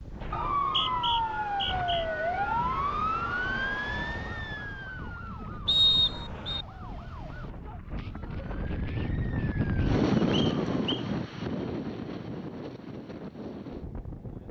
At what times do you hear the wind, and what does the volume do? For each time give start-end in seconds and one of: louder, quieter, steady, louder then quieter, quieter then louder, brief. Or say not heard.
0.0-14.4 louder then quieter.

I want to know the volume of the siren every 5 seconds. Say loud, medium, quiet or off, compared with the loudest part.
loud, quiet, off.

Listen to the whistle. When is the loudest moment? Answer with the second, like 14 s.
6 s.